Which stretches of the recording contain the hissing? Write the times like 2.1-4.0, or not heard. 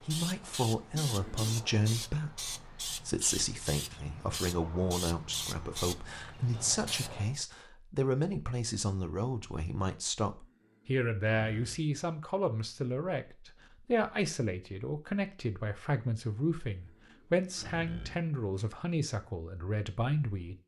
0.0-7.4.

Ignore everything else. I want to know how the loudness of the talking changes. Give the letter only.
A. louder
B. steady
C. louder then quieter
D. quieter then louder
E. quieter
B.